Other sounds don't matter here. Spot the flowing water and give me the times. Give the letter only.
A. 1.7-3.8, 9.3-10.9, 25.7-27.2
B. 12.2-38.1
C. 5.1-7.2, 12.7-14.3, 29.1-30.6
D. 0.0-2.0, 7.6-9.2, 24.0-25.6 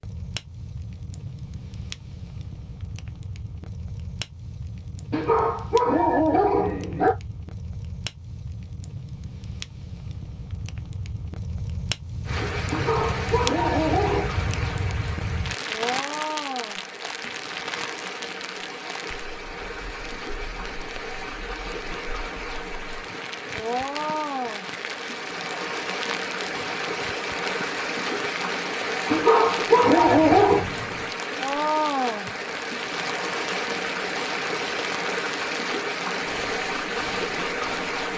B.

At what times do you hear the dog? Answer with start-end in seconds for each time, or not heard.
5.1-7.2, 12.7-14.3, 29.1-30.6.